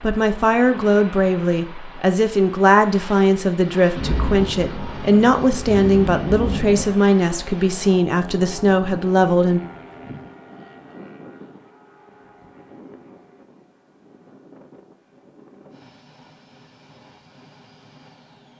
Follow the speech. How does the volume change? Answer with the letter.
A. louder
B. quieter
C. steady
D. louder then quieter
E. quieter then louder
C.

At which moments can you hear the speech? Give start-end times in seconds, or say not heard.
0.0-9.6.